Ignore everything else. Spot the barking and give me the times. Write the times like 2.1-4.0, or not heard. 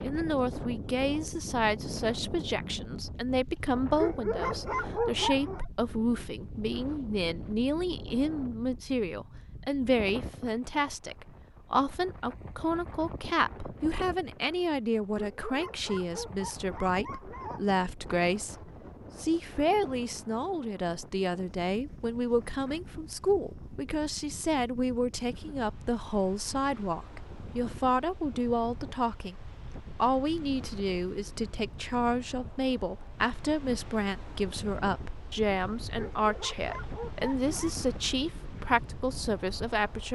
4.0-5.7, 15.2-17.8, 36.0-37.8.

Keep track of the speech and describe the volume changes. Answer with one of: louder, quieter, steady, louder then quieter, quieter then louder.
steady.